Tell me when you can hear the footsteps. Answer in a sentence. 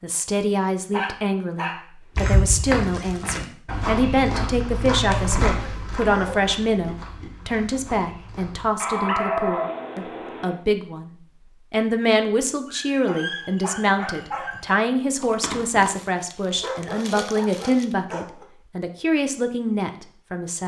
The footsteps can be heard from 2.1 to 8.8 s.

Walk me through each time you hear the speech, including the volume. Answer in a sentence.
The speech can be heard from 0.0 to 20.6 s, at a steady volume.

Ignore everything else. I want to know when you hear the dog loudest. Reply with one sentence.
The volume of the dog peaks at 9 seconds.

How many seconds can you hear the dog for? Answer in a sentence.
You can hear the dog for 9 seconds altogether.